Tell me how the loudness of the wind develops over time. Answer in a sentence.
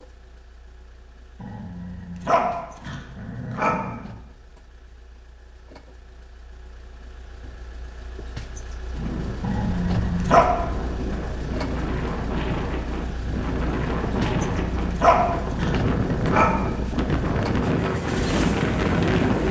The loudness of the wind goes up.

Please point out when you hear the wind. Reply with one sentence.
You can hear the wind from 8.9 to 19.4 s.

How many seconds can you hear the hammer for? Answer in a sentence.
The hammer can't be heard in this clip.